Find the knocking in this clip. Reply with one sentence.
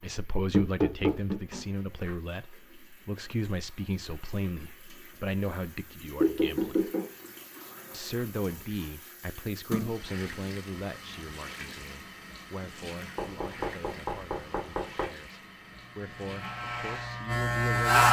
You can hear the knocking from 0.5 to 1.4 s, from 6.2 to 7.1 s and from 13.2 to 15.1 s.